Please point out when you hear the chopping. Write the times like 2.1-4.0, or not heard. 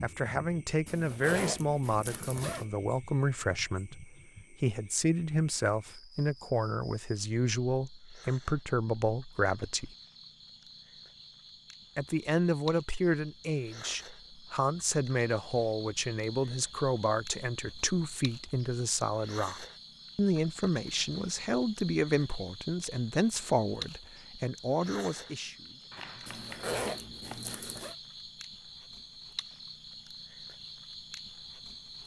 25.9-27.5.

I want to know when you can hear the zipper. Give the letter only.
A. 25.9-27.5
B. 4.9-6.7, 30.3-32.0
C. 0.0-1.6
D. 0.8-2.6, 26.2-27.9
D.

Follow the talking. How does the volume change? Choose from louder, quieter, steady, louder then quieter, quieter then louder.
steady.